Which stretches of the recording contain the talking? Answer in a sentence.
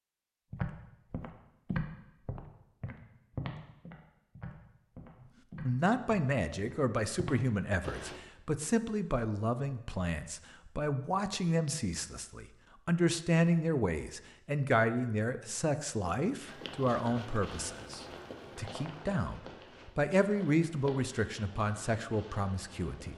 You can hear the talking from 5.7 to 23.1 s.